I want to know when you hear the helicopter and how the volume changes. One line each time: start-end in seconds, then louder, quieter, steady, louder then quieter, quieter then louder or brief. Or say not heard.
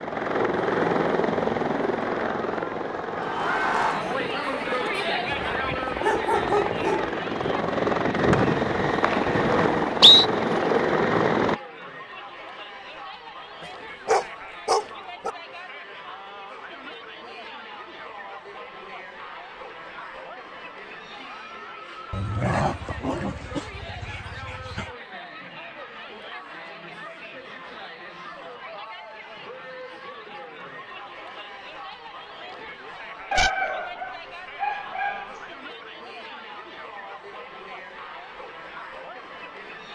0.0-11.6 quieter then louder.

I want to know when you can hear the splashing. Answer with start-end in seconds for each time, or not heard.
not heard.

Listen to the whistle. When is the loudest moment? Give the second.
10 s.